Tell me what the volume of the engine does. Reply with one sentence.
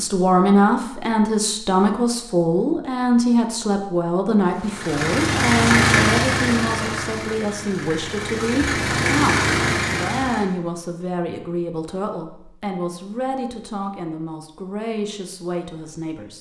The volume of the engine goes down, then up.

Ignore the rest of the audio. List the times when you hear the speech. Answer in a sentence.
The speech can be heard from 0.0 to 16.3 s.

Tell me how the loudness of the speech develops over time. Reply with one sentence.
The volume of the speech goes down.